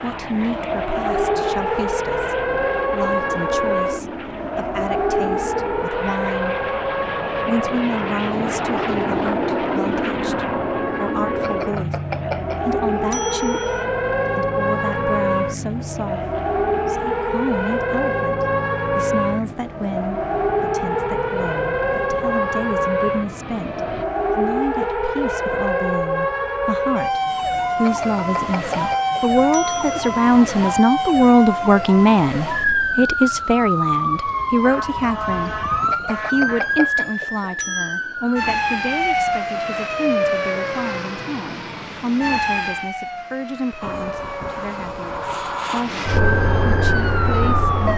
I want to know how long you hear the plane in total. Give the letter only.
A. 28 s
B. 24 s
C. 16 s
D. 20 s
A.